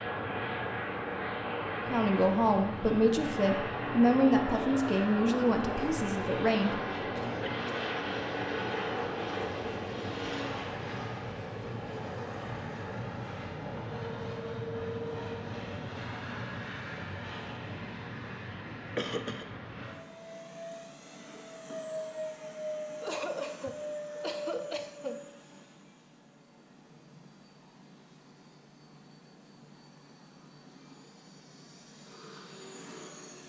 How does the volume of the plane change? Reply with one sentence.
The loudness of the plane goes down.